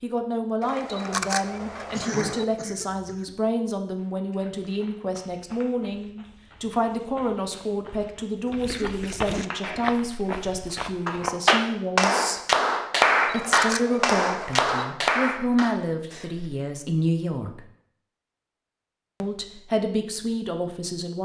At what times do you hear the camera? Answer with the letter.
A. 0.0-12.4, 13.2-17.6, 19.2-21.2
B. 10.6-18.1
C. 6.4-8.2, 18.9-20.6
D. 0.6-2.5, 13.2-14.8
D.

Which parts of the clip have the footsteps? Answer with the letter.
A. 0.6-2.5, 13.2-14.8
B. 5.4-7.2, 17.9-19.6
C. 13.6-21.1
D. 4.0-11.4
D.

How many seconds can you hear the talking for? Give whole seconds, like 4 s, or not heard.
19 s.